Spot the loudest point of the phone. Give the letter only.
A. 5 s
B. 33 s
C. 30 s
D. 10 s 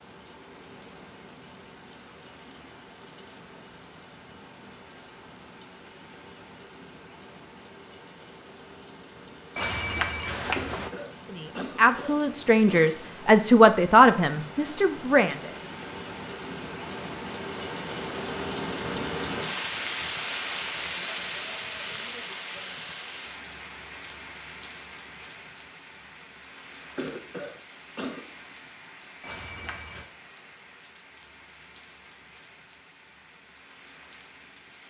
D.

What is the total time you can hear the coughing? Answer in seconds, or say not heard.
4 s.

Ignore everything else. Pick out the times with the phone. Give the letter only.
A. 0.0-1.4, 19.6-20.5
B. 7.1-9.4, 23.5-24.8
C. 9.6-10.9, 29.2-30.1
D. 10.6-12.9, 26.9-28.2
C.